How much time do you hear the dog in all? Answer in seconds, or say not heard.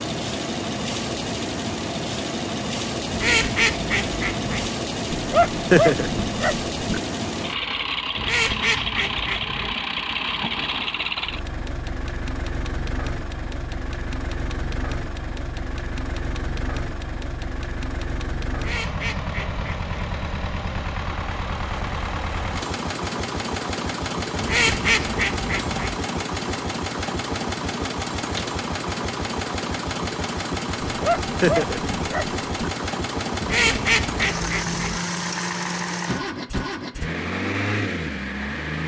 4 s.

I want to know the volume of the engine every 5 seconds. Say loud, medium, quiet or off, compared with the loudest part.
loud, loud, loud, medium, loud, loud, loud, loud.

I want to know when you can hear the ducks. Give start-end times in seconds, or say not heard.
3.1-4.7, 8.2-9.8, 18.6-19.9, 24.4-26.0, 33.4-35.0.